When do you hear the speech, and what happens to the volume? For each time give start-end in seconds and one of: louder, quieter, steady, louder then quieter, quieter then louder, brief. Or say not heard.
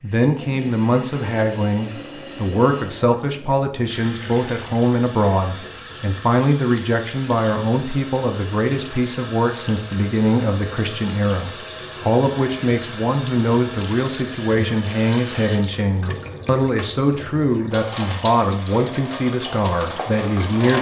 0.0-20.7 steady.